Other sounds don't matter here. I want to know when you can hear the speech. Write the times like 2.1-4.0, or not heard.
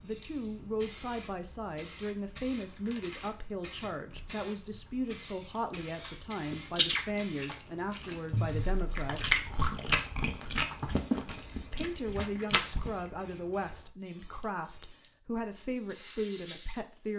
0.0-9.3, 11.7-17.1.